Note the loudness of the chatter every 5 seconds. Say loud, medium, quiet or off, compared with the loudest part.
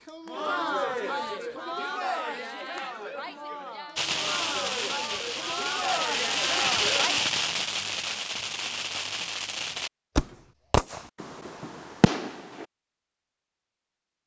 loud, loud, off.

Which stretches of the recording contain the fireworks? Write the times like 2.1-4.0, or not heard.
4.0-12.7.